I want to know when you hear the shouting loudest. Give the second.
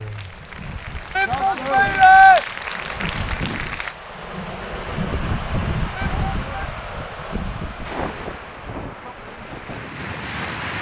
2 s.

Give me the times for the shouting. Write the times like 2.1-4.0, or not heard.
1.1-2.4, 6.0-6.7.